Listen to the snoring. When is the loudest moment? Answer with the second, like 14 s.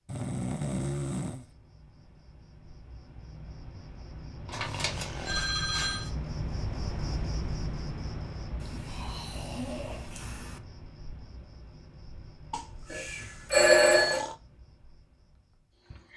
1 s.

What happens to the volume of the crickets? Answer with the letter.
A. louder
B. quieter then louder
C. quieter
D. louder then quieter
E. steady
D.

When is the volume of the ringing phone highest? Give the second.
14 s.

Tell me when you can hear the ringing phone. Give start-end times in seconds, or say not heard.
4.5-6.1, 12.9-14.2.